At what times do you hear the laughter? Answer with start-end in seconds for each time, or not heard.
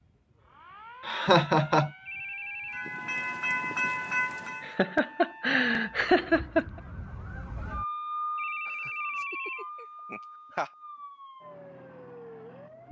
1.1-1.9, 4.6-6.8, 8.7-10.7.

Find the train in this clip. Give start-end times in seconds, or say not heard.
2.7-4.8.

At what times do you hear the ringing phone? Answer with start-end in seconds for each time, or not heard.
2.0-2.9, 8.3-9.7.